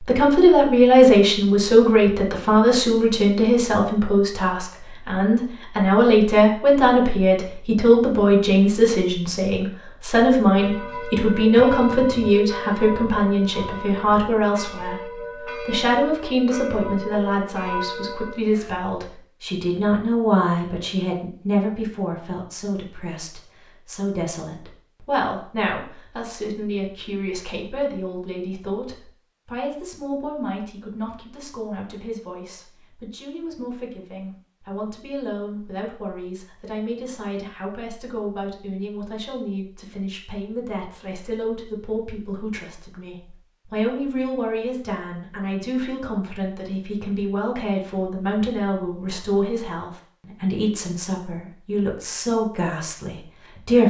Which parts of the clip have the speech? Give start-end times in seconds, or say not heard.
0.0-53.8.